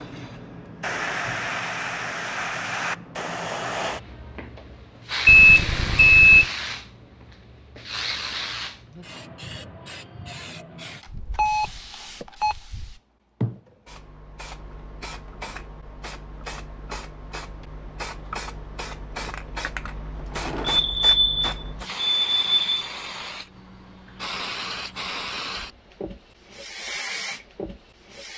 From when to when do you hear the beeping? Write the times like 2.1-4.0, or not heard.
5.2-6.5, 11.1-12.9, 20.6-22.9.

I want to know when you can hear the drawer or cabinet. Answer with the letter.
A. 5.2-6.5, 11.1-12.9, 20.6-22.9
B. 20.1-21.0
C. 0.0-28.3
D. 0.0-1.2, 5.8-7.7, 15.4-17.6
B.